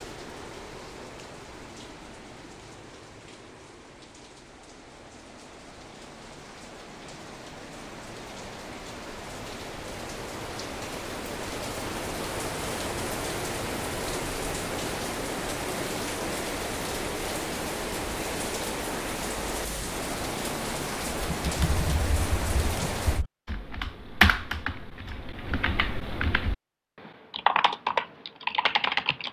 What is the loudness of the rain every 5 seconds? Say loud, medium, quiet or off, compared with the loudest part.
quiet, medium, loud, loud, loud, off.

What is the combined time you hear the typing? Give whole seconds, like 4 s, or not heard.
8 s.